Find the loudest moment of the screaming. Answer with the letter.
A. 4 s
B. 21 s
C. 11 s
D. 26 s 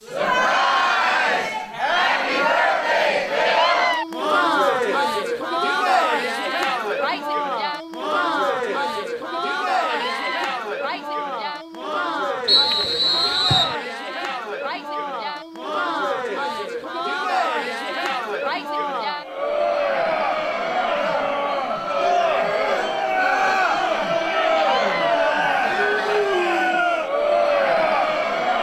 A.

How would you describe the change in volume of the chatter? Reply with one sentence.
The loudness of the chatter goes down, then up.